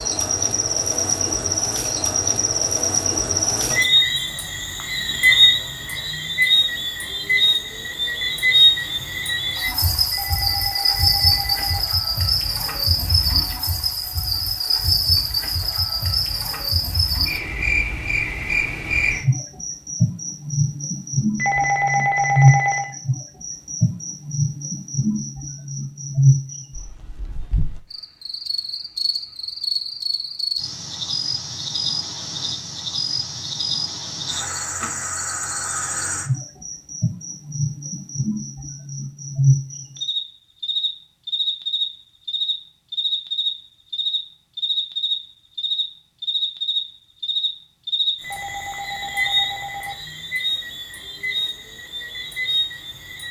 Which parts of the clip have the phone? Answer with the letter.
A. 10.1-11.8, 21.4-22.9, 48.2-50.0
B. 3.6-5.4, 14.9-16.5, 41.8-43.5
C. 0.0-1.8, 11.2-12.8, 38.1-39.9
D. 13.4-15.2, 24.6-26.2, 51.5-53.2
A.